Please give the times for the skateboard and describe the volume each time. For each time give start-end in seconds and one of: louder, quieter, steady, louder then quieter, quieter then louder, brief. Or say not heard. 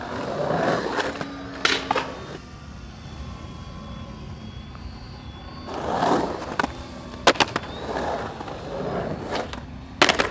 0.0-2.4 brief
5.7-10.2 louder then quieter.